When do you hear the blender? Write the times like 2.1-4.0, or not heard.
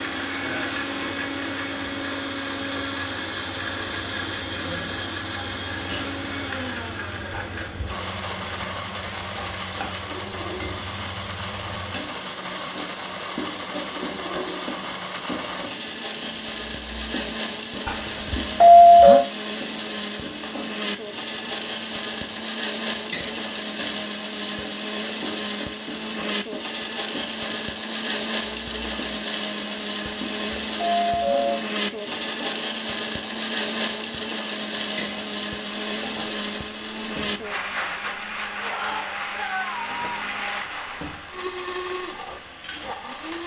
0.0-43.4.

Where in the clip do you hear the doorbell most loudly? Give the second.
19 s.